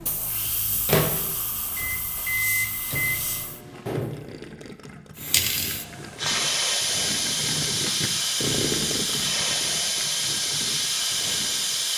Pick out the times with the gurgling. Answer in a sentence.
The gurgling can be heard from 3.3 to 11.9 s.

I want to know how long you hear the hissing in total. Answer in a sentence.
You can hear the hissing for 10 seconds altogether.